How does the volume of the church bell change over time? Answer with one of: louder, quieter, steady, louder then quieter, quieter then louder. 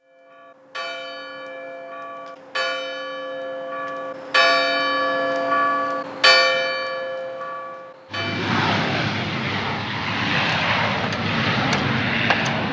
louder then quieter.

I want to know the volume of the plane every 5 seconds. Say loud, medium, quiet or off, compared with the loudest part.
off, loud, loud.